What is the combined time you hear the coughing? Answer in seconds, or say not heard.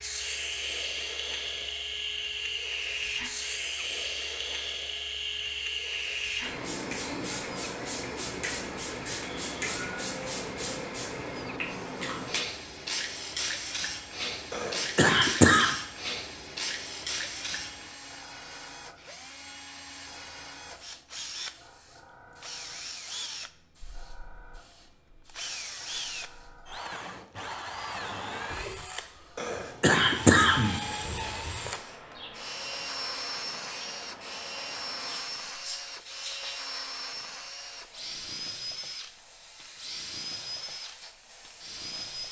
3 s.